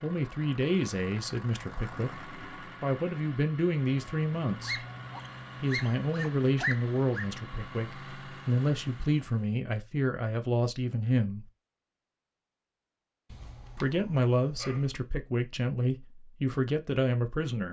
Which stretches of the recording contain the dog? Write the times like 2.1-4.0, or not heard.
4.6-7.3, 13.3-14.9.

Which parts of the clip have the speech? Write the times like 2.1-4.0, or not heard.
0.0-4.8, 5.6-11.4, 13.8-17.6.